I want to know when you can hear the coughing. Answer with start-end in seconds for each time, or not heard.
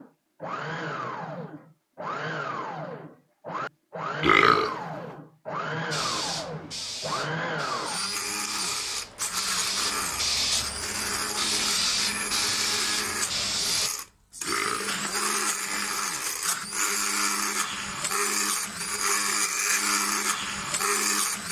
not heard.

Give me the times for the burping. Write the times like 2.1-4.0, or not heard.
4.2-4.8, 14.4-15.9.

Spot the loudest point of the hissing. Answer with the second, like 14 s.
12 s.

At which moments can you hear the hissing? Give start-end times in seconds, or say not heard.
5.9-13.9.